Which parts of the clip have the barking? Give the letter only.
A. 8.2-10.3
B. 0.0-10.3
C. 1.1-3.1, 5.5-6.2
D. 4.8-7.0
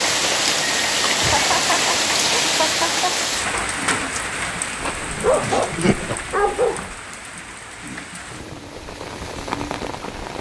D.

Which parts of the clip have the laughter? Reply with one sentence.
The laughter can be heard from 1.1 to 3.1 s and from 5.5 to 6.2 s.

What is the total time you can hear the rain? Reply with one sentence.
The rain can be heard for 10 seconds in total.